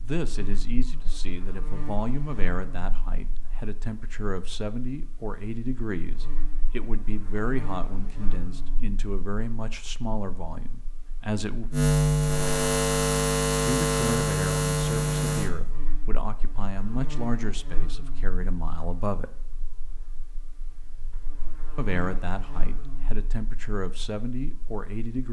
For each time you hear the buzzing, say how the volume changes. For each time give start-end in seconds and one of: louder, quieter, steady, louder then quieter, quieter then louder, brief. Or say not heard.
0.0-25.2 louder then quieter.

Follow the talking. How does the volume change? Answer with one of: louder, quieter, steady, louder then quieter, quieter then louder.
steady.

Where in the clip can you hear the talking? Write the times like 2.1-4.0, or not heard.
0.0-11.7, 13.4-19.3, 21.8-25.2.